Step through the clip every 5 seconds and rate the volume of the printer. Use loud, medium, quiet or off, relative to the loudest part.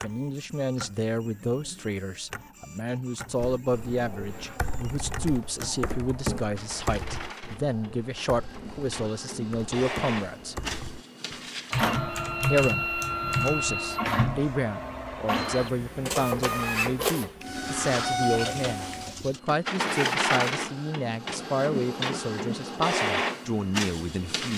quiet, medium, loud, loud, loud.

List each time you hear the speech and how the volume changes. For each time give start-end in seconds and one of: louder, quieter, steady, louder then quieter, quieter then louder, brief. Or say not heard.
0.0-10.6 steady
12.5-24.5 steady.